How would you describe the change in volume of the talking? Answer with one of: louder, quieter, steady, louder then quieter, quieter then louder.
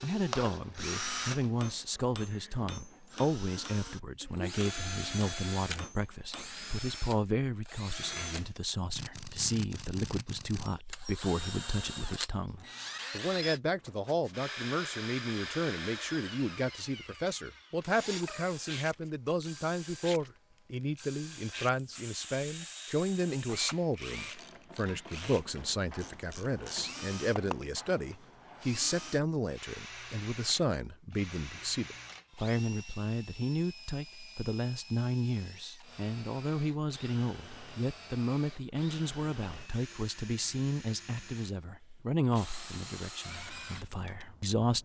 steady.